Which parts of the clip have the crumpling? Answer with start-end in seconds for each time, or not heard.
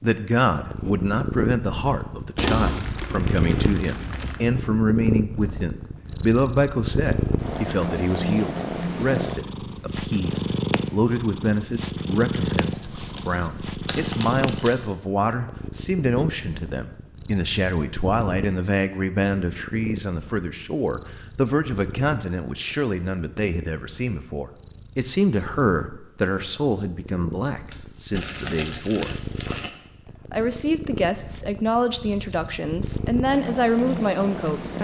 2.4-4.4, 12.3-14.8, 27.7-29.7.